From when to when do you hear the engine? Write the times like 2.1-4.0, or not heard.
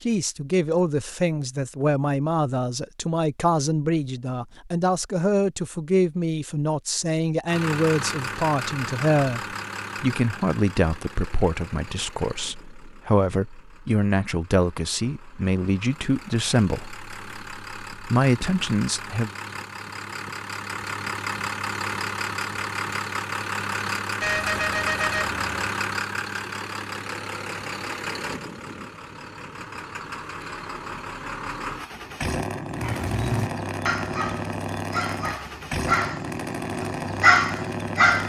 7.5-38.2.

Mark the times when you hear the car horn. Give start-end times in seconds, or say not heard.
24.2-25.6.